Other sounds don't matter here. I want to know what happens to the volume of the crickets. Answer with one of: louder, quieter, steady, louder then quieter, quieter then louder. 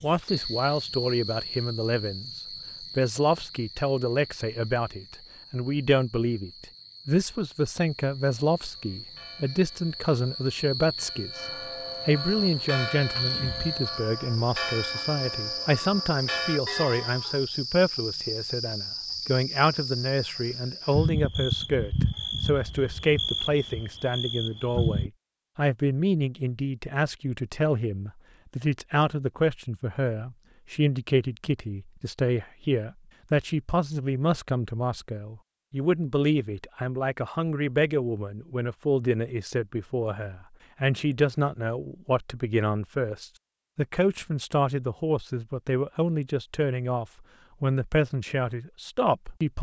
quieter then louder.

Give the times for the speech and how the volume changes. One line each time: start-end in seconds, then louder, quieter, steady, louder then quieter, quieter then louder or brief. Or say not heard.
0.0-11.4 steady
12.1-49.5 steady.